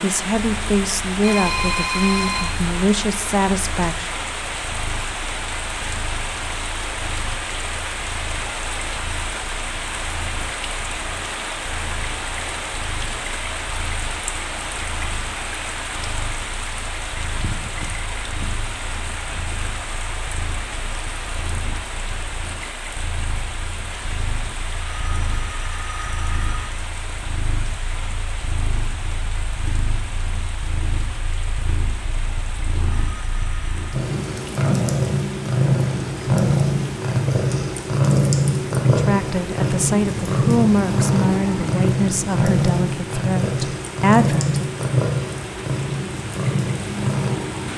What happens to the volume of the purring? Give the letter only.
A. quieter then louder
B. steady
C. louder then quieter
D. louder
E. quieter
D.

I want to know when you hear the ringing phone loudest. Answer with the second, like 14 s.
2 s.